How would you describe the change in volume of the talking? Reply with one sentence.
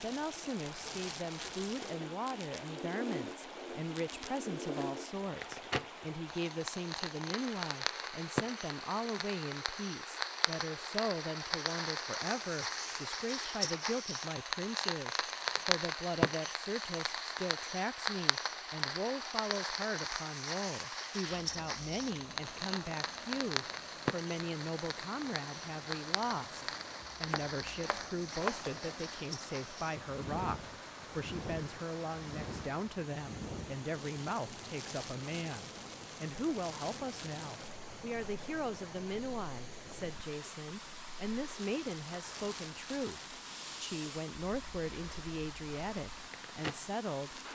The loudness of the talking stays about the same.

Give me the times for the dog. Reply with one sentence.
The dog can't be heard in this clip.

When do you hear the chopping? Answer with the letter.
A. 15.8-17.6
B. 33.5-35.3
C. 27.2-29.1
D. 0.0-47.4
C.